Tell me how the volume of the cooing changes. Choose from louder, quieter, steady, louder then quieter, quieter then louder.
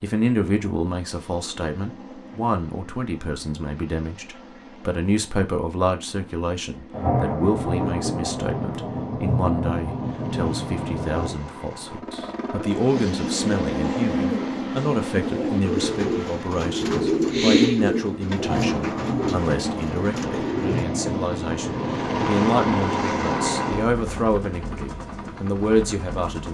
louder then quieter.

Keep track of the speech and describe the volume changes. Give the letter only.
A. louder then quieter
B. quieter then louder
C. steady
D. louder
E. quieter
C.